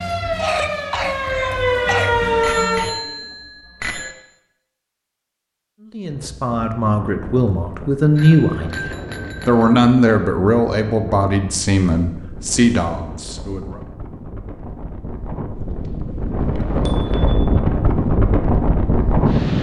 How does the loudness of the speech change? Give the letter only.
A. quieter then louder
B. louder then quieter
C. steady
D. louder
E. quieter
B.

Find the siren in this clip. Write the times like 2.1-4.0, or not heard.
0.0-2.9.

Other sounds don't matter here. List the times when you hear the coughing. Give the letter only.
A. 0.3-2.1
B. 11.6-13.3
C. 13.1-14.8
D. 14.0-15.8
A.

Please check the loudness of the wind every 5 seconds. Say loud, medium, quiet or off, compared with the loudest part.
off, quiet, quiet, loud.